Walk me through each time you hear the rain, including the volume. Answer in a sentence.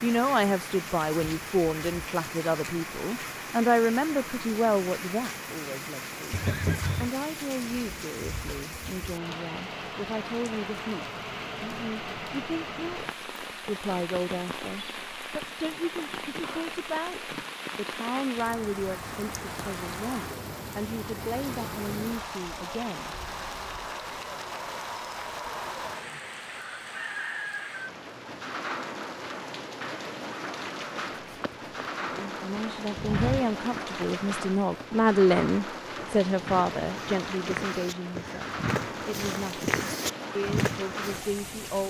The rain can be heard from 0.0 to 41.8 s, at a steady volume.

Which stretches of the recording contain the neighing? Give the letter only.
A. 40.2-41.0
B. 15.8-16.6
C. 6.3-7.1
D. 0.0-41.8
C.